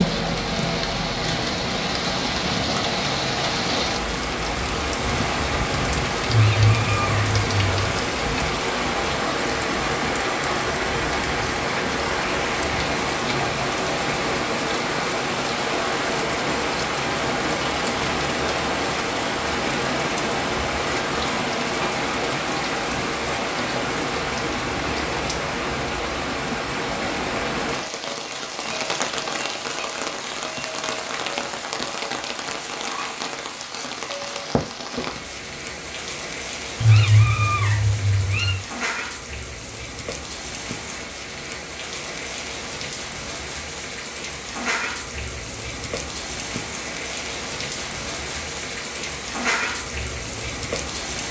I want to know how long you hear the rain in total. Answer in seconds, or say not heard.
51 s.